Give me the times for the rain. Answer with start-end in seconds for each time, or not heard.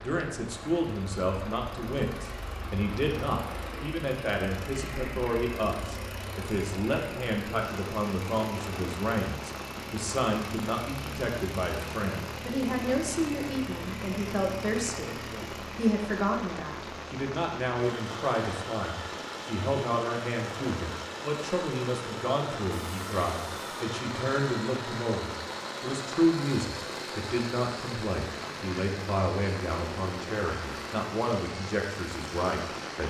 0.0-33.0.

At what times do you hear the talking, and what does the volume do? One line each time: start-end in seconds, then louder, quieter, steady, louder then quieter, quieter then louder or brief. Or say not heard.
0.0-33.0 steady.